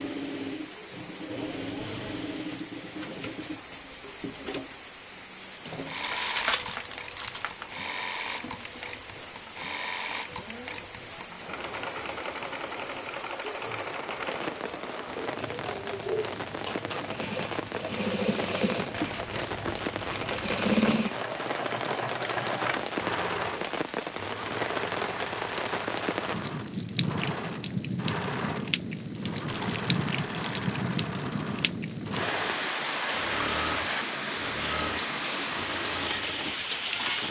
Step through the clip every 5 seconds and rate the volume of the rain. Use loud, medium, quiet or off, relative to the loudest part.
quiet, quiet, medium, medium, loud, loud, loud, loud.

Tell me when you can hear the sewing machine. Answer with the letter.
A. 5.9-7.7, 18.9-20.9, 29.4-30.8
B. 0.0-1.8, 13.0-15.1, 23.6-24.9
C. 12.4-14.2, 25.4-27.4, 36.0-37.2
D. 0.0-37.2
D.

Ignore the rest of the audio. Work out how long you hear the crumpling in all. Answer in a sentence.
The crumpling can be heard for 5 seconds in total.